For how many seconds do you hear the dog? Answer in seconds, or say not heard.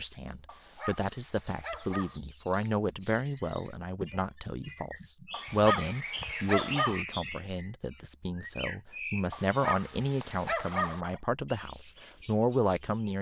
5 s.